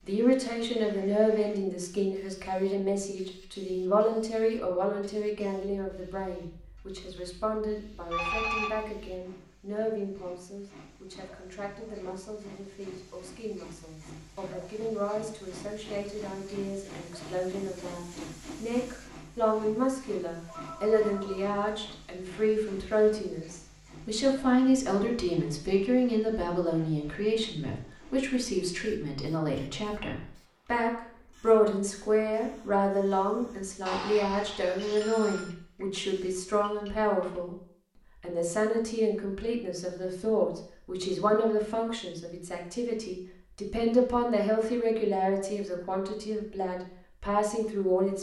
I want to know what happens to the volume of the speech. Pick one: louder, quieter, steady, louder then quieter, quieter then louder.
quieter then louder.